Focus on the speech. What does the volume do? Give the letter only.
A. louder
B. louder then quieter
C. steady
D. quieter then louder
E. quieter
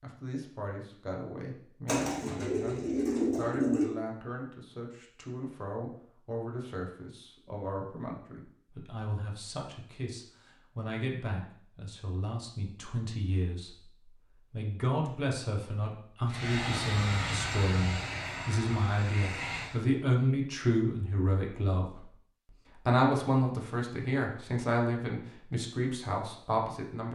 A.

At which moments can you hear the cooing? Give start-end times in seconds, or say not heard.
1.9-4.0.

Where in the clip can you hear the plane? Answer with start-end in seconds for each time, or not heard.
16.2-19.9.